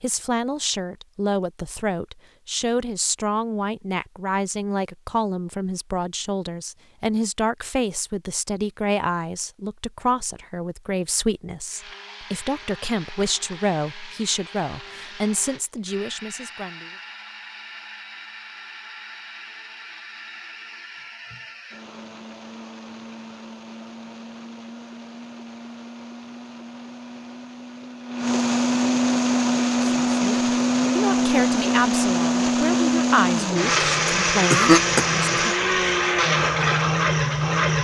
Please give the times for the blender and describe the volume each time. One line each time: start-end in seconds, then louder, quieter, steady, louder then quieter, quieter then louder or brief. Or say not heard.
11.7-37.7 louder.